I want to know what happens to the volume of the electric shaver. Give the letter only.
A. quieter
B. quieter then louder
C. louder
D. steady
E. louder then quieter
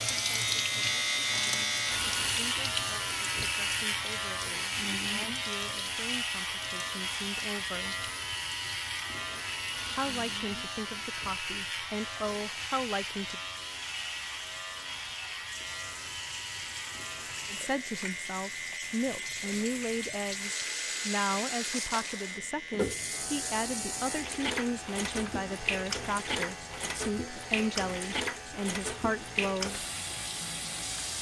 A.